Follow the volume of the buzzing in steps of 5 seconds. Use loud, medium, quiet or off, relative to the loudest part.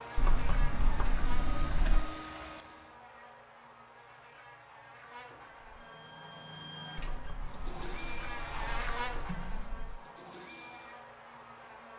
loud, loud, medium.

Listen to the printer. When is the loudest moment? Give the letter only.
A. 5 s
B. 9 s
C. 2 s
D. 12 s
C.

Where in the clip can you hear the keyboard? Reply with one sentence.
You can hear the keyboard from 0.1 to 2.0 s and from 7.0 to 9.9 s.